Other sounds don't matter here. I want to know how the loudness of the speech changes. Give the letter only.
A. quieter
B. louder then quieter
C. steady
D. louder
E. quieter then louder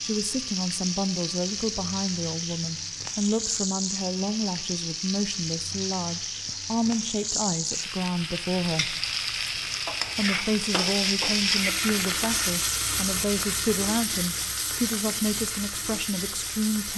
C.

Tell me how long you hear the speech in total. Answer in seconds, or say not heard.
16 s.